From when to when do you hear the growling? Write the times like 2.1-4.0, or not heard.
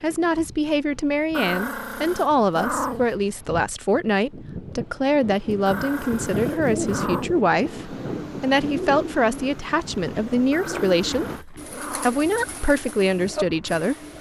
1.3-3.1, 5.7-7.3, 10.5-12.2.